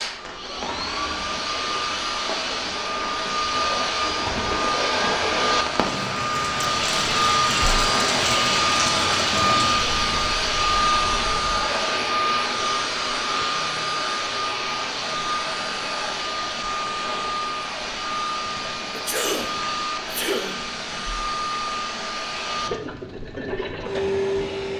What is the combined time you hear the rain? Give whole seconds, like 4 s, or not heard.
25 s.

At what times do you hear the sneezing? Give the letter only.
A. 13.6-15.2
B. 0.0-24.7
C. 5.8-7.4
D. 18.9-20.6
D.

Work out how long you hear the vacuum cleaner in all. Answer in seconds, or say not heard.
25 s.